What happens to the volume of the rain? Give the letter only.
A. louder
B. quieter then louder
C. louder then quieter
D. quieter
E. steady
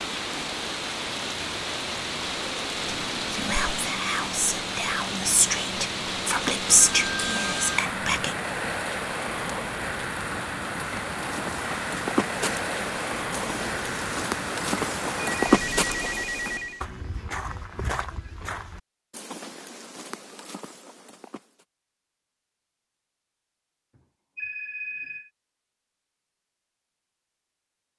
E.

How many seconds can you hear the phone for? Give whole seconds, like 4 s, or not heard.
4 s.